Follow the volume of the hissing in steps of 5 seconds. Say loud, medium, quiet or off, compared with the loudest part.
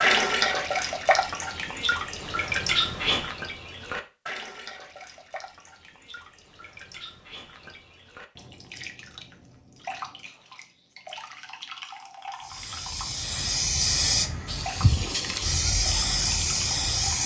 off, off, loud, loud.